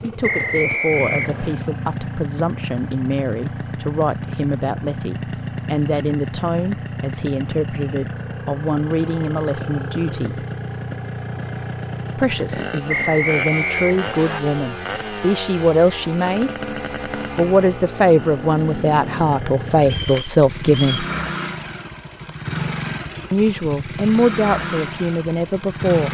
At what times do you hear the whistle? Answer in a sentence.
The whistle can be heard from 0.2 to 1.6 s, from 12.8 to 14.4 s and from 19.8 to 21.1 s.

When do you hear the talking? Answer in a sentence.
You can hear the talking from 0.0 to 10.4 s, from 12.2 to 16.5 s, from 17.4 to 21.1 s and from 23.3 to 26.0 s.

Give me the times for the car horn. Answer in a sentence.
You can't hear the car horn here.